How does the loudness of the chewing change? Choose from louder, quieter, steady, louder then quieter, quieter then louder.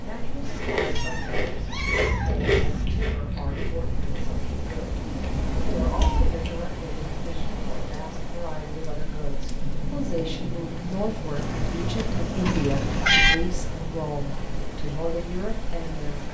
louder then quieter.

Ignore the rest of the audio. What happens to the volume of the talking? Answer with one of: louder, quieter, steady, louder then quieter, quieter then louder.
louder.